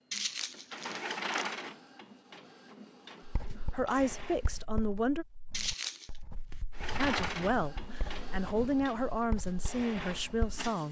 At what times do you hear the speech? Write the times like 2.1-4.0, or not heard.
3.7-5.2, 7.0-10.8.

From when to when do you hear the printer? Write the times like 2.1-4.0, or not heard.
0.0-4.7, 6.7-10.8.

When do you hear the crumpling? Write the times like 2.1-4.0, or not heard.
0.1-1.4, 5.5-6.1.